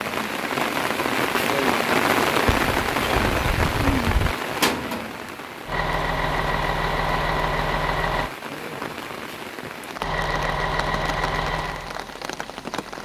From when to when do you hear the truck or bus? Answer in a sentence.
You can hear the truck or bus from 5.7 to 8.3 s and from 10.0 to 13.0 s.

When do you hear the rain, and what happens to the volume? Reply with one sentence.
You can hear the rain from 0.0 to 13.0 s, getting quieter.